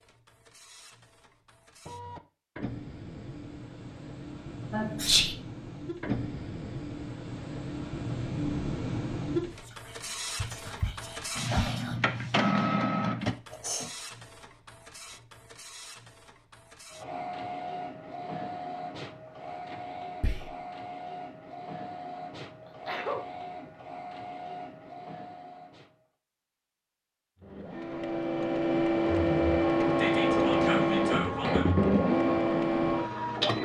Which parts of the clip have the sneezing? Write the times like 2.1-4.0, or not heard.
4.7-5.2, 13.5-13.9, 22.6-23.2.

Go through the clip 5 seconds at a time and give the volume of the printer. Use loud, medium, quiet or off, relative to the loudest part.
quiet, medium, medium, quiet, quiet, loud, loud.